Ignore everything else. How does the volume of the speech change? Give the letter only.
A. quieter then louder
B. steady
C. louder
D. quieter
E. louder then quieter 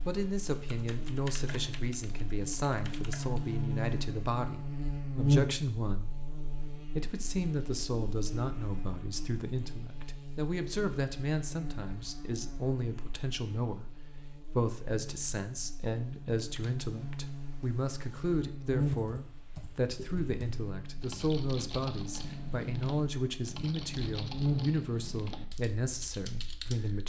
B.